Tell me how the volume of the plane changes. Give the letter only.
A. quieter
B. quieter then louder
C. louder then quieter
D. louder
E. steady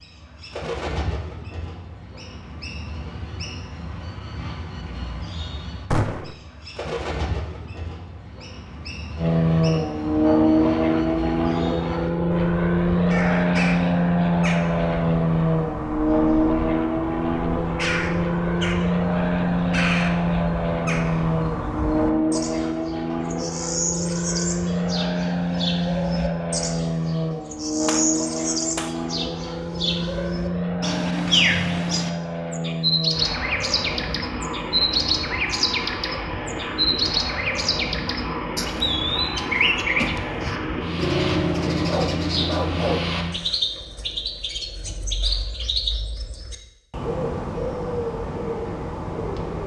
A.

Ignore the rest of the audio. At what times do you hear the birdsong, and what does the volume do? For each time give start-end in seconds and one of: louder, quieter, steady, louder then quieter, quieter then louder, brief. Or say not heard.
0.0-49.6 louder.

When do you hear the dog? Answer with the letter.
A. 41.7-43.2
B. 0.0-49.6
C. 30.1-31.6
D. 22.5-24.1
A.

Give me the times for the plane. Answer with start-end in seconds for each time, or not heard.
9.2-43.4.